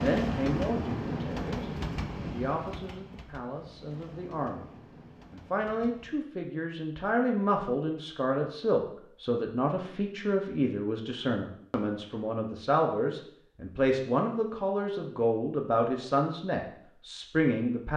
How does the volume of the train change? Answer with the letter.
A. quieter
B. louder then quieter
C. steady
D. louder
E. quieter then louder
A.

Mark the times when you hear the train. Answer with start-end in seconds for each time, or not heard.
0.0-6.3.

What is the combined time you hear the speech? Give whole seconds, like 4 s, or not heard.
17 s.